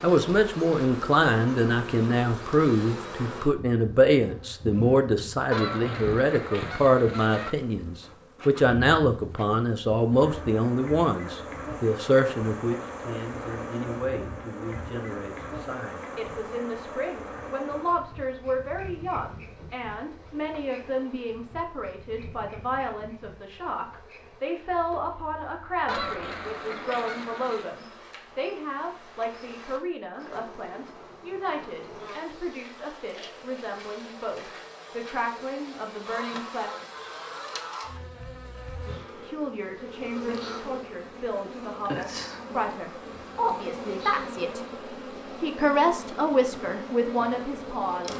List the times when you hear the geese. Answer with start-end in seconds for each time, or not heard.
5.5-7.5, 25.9-27.8, 36.0-37.9.